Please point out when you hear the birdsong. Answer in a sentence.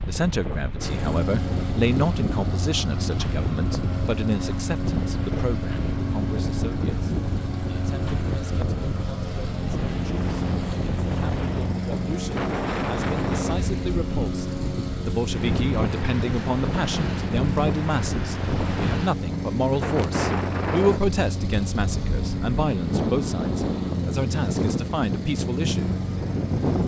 You can't hear the birdsong here.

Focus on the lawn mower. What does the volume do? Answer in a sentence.
The volume of the lawn mower stays about the same.